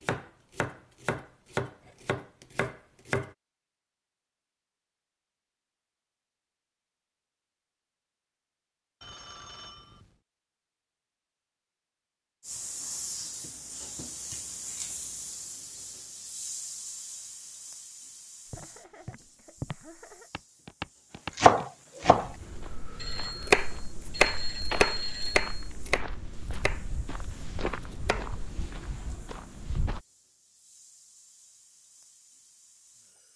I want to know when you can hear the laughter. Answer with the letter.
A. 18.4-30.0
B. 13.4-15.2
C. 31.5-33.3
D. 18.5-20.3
D.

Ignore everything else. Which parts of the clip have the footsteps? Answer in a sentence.
The footsteps can be heard from 18.4 to 30.0 s.